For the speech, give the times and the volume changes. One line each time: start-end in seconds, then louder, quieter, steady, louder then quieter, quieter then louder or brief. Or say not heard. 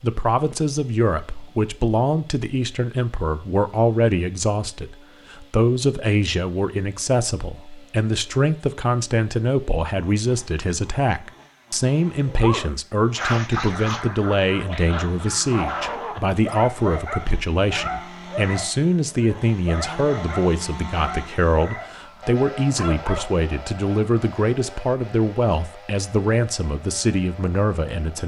0.0-28.2 steady.